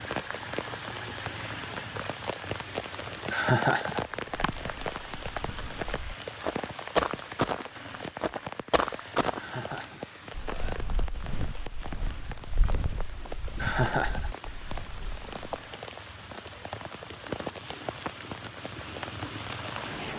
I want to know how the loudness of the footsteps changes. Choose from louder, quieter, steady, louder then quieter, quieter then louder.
louder then quieter.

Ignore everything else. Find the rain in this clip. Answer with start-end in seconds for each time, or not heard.
0.0-20.1.